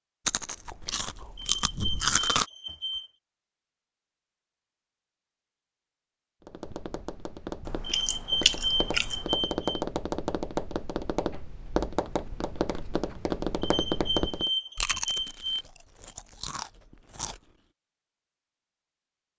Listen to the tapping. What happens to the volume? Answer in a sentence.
The loudness of the tapping goes up.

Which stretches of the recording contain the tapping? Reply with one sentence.
The tapping can be heard from 6.4 to 14.5 s.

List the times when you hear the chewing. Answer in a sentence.
The chewing can be heard from 0.2 to 2.5 s, from 7.7 to 9.3 s and from 14.8 to 17.4 s.